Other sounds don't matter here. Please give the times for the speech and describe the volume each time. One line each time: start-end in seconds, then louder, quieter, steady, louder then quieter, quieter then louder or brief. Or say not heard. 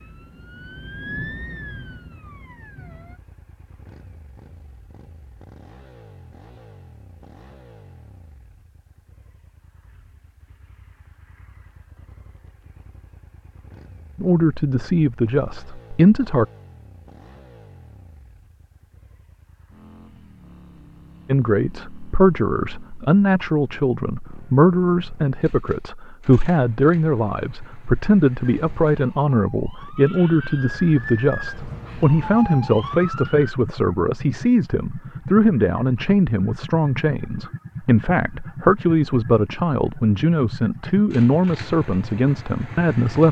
14.2-16.4 brief
21.2-43.2 steady.